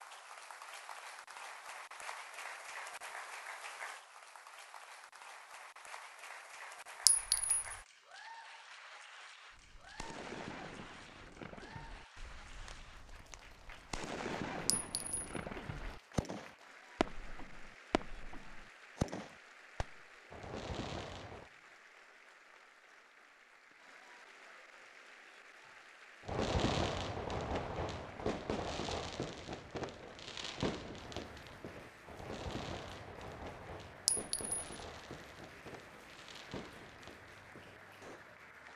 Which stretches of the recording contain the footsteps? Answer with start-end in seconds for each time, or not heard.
not heard.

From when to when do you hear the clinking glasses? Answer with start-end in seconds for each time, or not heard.
7.0-7.8, 14.7-15.3, 34.0-34.5.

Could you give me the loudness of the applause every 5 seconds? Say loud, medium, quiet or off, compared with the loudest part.
loud, loud, medium, medium, medium, medium, medium, medium.